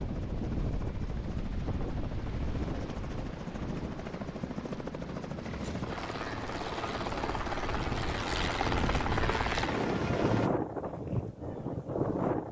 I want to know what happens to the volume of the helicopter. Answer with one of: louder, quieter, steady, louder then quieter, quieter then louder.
louder.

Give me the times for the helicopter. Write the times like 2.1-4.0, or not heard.
0.0-10.5.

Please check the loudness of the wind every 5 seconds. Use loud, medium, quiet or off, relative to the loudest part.
medium, medium, loud.